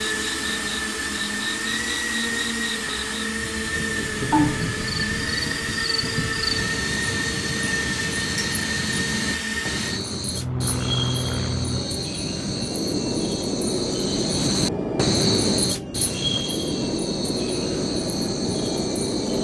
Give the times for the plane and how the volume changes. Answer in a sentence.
You can hear the plane from 0.0 to 19.3 s, at a steady volume.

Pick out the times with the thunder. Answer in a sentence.
The thunder can be heard from 3.5 to 6.7 s.